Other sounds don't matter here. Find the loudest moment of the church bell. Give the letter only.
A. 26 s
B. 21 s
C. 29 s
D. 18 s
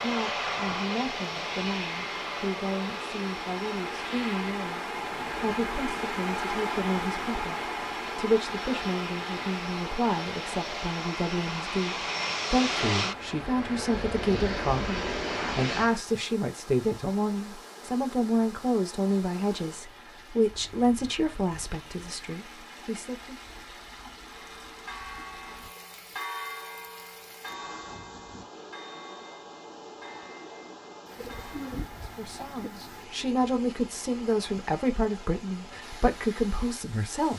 A.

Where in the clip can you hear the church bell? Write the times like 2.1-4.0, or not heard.
24.2-31.9.